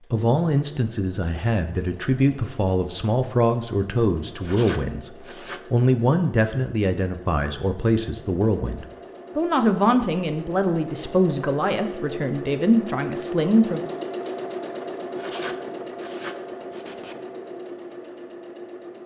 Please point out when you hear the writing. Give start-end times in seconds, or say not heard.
4.4-5.8, 15.2-17.1.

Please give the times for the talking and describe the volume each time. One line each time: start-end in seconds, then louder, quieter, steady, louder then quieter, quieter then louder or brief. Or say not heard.
0.1-13.8 steady.